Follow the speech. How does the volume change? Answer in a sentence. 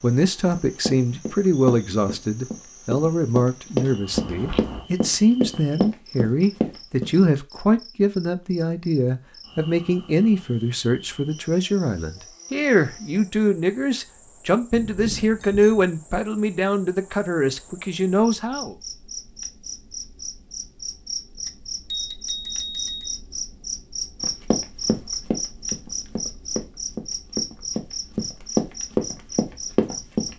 The volume of the speech stays about the same.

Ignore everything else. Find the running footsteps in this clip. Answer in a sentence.
The running footsteps can be heard from 0.5 to 7.2 s and from 24.2 to 30.3 s.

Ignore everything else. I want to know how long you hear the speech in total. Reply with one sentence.
You can hear the speech for 19 seconds altogether.